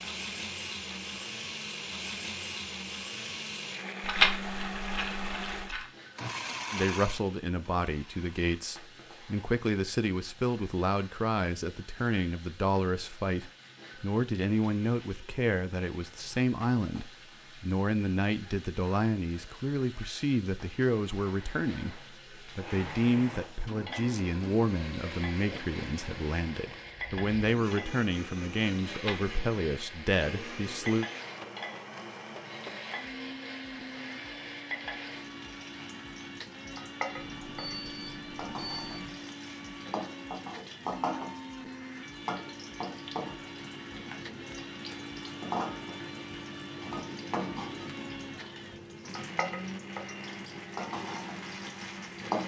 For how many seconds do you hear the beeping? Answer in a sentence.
The beeping can be heard for 2 seconds in total.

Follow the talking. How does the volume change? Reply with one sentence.
The loudness of the talking stays about the same.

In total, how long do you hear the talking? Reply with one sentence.
The talking can be heard for 24 seconds in total.